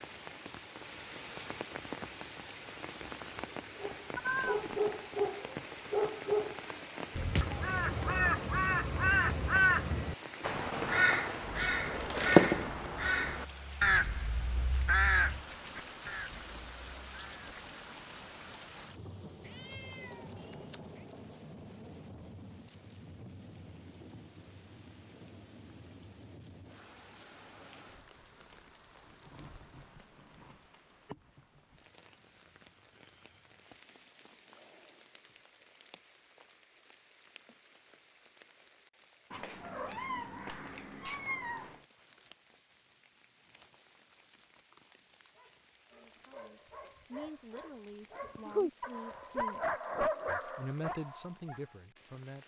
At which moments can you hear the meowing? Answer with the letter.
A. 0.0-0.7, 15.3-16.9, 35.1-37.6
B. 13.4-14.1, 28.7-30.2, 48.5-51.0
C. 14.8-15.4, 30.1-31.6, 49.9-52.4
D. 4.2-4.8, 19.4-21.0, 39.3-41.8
D.